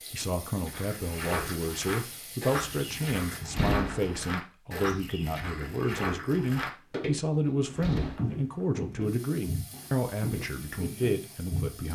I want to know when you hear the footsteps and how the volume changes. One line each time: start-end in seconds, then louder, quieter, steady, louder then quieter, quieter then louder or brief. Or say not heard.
0.6-11.8 steady.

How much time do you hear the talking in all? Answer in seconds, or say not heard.
12 s.